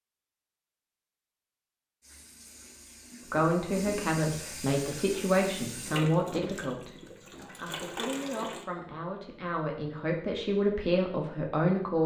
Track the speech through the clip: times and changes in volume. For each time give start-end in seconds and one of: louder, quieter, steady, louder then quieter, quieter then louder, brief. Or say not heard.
3.3-12.0 quieter then louder.